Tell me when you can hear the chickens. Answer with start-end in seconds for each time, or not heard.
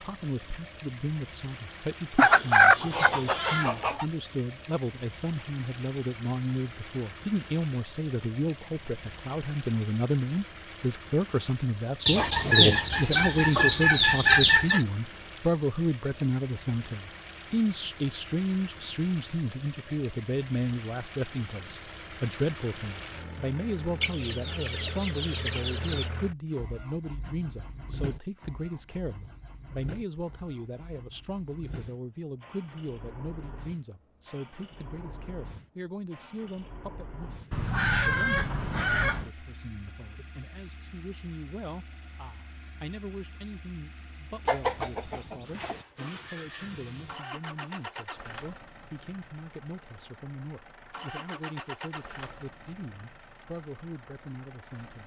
2.1-4.0, 12.1-14.8, 24.0-26.1, 37.5-39.3, 44.5-45.9.